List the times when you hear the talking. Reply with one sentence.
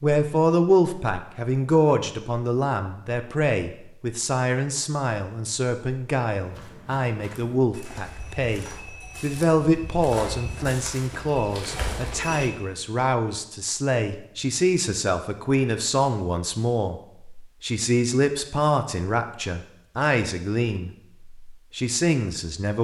You can hear the talking from 0.0 to 22.7 s.